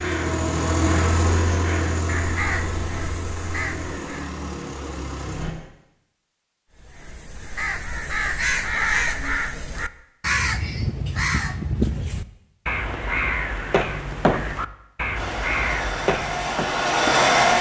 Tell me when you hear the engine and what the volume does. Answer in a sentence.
The engine can be heard from 0.0 to 5.5 s, getting quieter; and briefly from 15.2 to 17.5 s.